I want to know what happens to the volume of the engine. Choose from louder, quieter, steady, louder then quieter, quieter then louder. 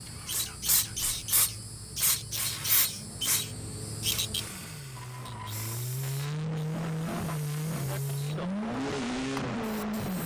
louder.